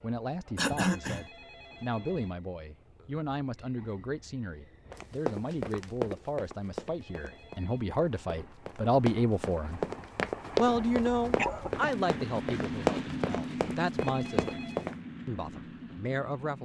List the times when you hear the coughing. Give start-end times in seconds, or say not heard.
0.6-1.2, 11.3-11.9.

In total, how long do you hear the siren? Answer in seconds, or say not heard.
not heard.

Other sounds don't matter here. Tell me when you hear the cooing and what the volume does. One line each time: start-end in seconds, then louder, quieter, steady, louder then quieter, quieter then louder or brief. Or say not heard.
not heard.